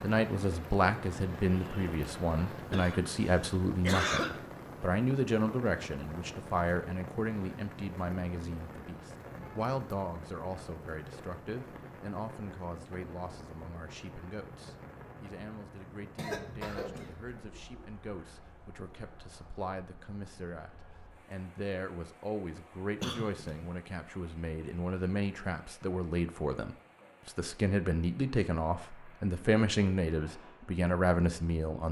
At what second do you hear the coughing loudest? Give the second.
4 s.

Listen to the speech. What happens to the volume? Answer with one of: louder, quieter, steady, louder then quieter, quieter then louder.
quieter then louder.